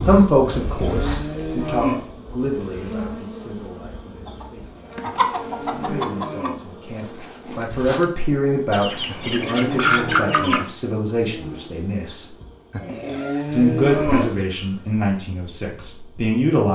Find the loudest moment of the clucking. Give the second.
10 s.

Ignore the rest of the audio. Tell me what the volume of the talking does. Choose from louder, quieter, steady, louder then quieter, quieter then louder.
quieter then louder.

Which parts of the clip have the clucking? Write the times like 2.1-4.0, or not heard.
4.2-6.5, 8.7-10.7.